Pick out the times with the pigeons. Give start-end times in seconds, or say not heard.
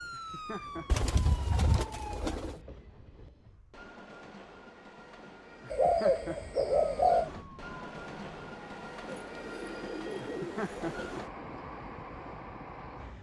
0.8-2.5, 5.7-7.3, 9.1-11.1.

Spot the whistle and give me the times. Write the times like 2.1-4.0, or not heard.
not heard.